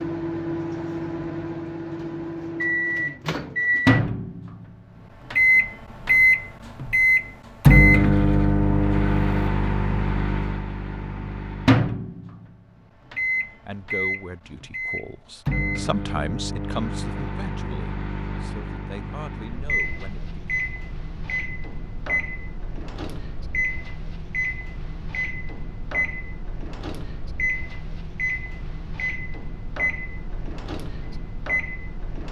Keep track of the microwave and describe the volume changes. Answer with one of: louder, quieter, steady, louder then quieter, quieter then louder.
quieter.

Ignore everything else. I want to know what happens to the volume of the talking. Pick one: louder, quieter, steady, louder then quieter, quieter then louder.
louder then quieter.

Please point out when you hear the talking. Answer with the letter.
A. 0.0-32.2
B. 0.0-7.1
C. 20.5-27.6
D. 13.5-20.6
D.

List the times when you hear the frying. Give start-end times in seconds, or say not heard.
not heard.